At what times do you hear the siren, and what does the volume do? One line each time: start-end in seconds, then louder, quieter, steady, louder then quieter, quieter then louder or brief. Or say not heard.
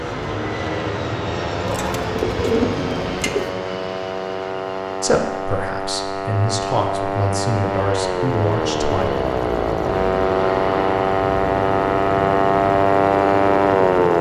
0.0-14.1 louder.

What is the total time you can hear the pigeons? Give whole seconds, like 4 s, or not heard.
2 s.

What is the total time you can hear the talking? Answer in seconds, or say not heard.
4 s.